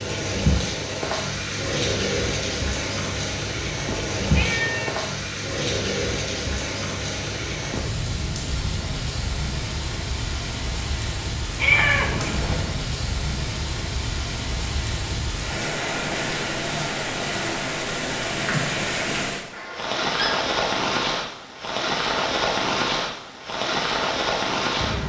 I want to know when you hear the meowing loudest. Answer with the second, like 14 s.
12 s.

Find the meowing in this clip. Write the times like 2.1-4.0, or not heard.
4.2-5.0, 11.6-12.7, 19.5-20.4.